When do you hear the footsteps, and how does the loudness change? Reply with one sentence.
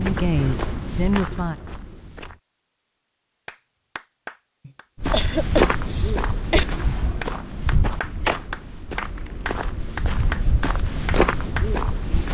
You can hear the footsteps briefly from 0.0 to 2.4 s; and from 5.0 to 12.2 s, getting quieter then louder.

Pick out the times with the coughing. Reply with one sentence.
The coughing can be heard from 4.7 to 6.7 s.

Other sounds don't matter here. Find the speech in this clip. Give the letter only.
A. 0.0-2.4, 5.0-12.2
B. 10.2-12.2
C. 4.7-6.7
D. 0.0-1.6
D.